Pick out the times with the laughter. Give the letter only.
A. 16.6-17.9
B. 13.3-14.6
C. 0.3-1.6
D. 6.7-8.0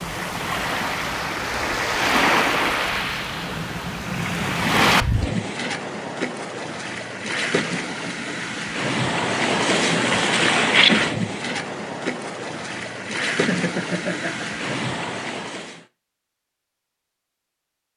B.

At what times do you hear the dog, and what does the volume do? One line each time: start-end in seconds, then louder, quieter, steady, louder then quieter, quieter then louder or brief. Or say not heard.
not heard.